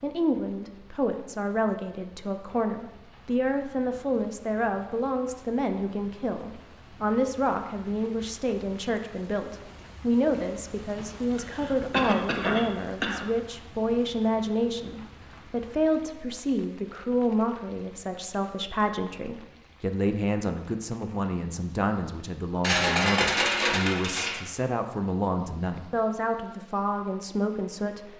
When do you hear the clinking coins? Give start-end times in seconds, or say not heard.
22.6-24.4.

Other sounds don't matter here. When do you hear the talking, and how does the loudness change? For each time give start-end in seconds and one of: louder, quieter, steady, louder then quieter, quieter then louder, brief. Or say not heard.
0.0-28.1 steady.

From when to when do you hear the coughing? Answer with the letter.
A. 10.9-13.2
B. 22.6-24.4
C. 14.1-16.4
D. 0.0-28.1
A.